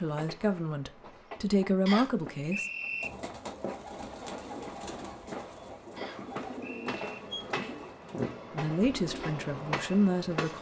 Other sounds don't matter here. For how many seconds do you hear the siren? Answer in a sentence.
The siren can't be heard in this clip.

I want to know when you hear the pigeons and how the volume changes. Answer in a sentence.
You can hear the pigeons from 3.0 to 9.3 s, at a steady volume.